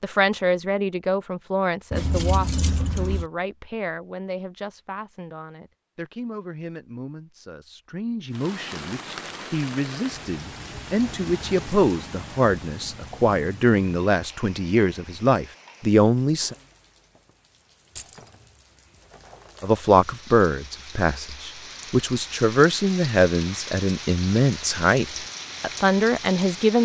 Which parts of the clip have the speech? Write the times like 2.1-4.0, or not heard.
0.0-16.6, 19.6-26.8.